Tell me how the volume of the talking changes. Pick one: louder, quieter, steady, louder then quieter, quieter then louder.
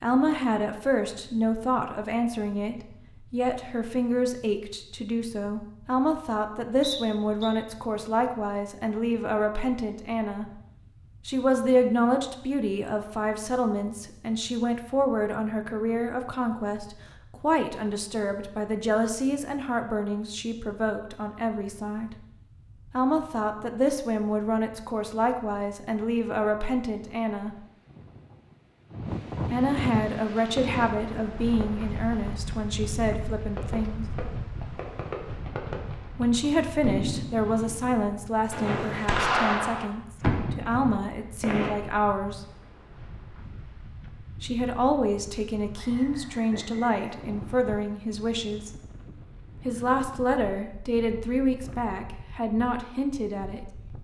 steady.